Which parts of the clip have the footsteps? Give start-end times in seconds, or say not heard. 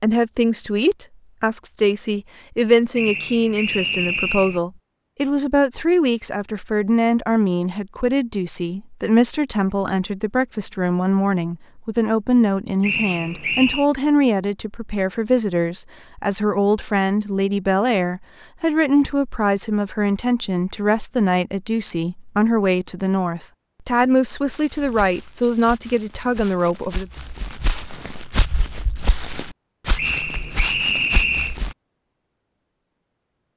24.5-31.8.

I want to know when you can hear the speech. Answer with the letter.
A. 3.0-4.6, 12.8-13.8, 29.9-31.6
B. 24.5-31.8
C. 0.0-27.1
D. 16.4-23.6
C.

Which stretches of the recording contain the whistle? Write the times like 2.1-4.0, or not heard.
3.0-4.6, 12.8-13.8, 29.9-31.6.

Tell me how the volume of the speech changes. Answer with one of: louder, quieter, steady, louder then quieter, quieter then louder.
steady.